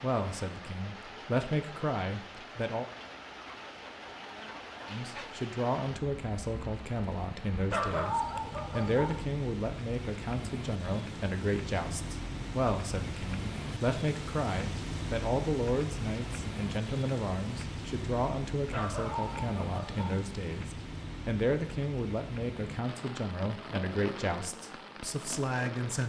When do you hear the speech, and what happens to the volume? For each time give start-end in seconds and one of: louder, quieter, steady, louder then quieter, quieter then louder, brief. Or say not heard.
0.0-2.9 brief
4.9-26.0 steady.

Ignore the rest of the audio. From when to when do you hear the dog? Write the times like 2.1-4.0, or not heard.
7.7-9.2, 18.7-20.2.